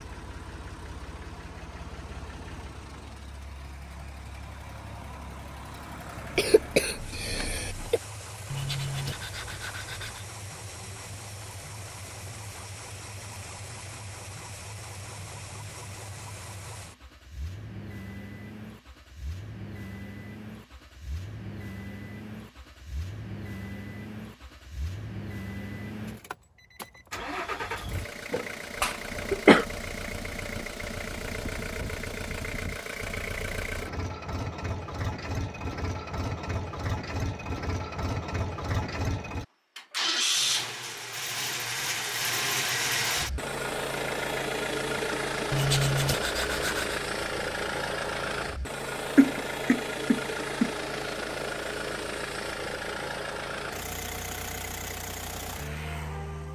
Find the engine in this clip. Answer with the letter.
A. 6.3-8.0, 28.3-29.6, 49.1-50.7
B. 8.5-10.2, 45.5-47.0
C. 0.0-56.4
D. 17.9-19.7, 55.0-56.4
C.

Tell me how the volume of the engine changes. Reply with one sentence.
The loudness of the engine goes up.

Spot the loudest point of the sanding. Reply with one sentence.
The volume of the sanding peaks at 46 seconds.